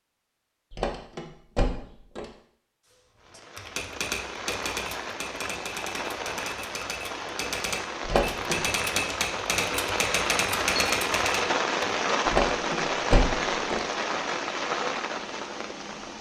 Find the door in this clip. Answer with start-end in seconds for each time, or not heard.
0.7-2.2, 8.1-8.6, 12.2-13.8.